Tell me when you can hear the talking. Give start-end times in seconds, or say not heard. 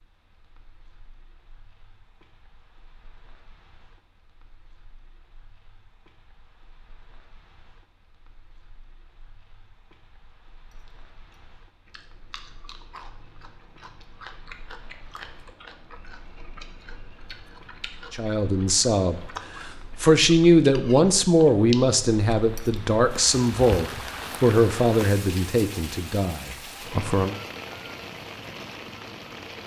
18.1-27.4.